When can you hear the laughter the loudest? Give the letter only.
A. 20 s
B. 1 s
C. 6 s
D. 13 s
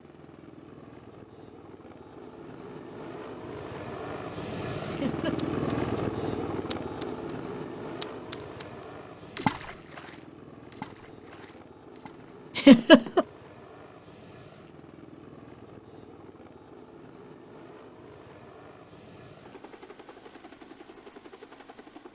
D.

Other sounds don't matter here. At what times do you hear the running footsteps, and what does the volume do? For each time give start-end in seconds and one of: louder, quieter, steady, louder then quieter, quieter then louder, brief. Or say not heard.
not heard.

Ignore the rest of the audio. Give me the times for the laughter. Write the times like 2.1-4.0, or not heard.
4.9-5.3, 12.6-13.2.